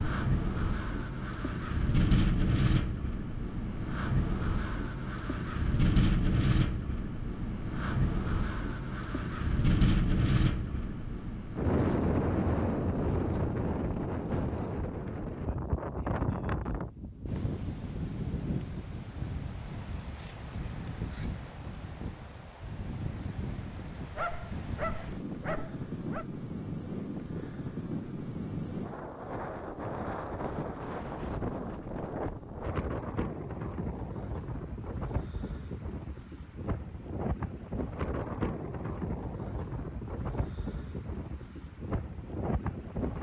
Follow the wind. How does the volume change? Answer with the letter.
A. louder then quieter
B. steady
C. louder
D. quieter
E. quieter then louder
D.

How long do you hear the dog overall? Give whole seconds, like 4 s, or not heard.
2 s.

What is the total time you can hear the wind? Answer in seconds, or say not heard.
43 s.